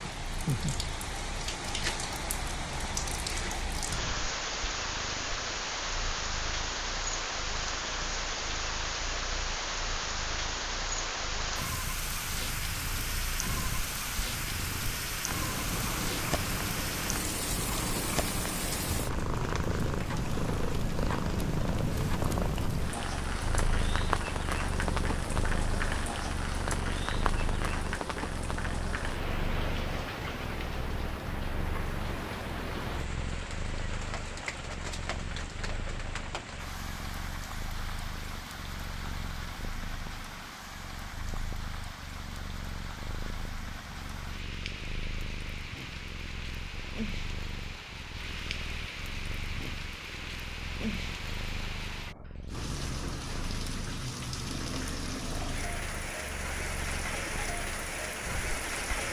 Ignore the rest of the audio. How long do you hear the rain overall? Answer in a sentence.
You can hear the rain for 59 seconds altogether.